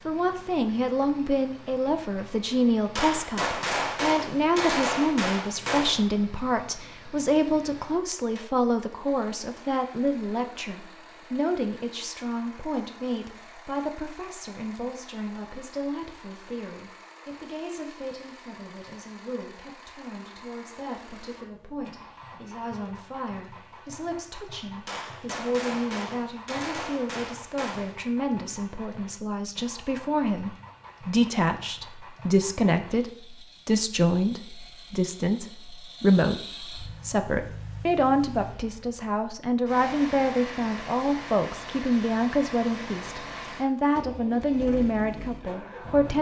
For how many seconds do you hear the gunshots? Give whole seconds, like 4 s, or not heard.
6 s.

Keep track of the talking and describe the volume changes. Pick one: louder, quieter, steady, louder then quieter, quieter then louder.
quieter then louder.